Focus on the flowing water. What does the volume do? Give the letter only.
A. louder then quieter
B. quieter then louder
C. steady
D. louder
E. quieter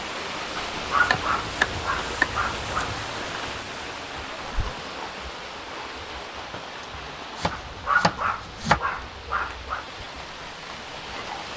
E.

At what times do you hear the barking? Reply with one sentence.
You can hear the barking from 0.7 to 2.9 s and from 7.5 to 9.8 s.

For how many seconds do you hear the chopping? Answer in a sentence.
The chopping can be heard for 4 seconds in total.